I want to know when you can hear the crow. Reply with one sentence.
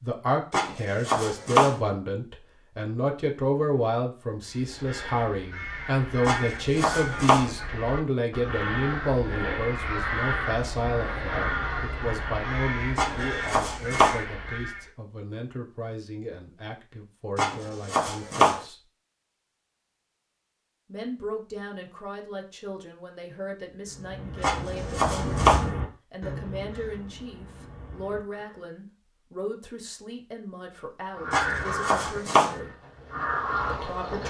You can hear the crow from 4.4 to 14.9 s, from 23.9 to 28.6 s and from 31.1 to 34.2 s.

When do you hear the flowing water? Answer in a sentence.
You can't hear the flowing water here.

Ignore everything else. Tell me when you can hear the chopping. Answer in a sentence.
The chopping can be heard from 0.5 to 1.8 s, from 6.2 to 7.5 s, from 12.9 to 14.2 s, from 17.4 to 18.6 s, from 24.4 to 25.6 s and from 31.3 to 32.5 s.